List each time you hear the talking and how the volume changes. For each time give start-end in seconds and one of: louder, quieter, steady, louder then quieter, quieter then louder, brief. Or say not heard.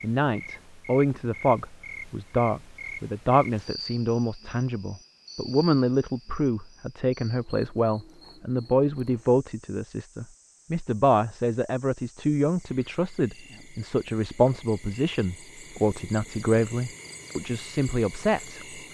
0.0-18.8 steady.